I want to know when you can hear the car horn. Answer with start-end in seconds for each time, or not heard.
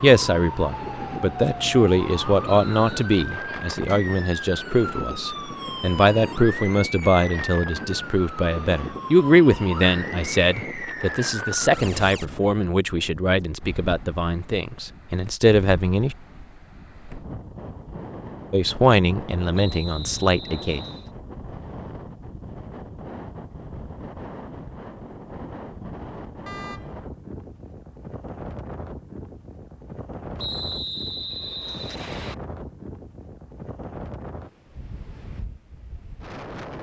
26.4-27.1.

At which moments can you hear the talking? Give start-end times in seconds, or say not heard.
0.0-16.1, 18.5-20.8.